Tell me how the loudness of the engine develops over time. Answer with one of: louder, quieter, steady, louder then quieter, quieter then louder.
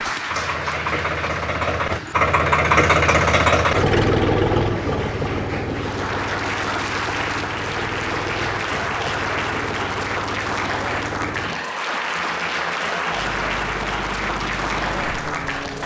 quieter.